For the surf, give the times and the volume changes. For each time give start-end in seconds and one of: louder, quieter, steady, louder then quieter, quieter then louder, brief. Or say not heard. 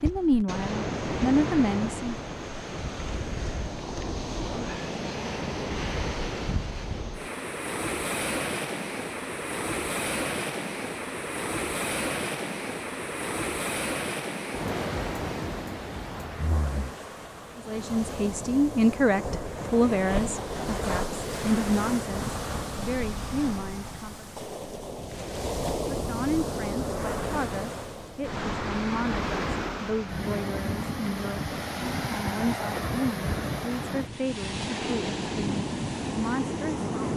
0.0-37.1 steady.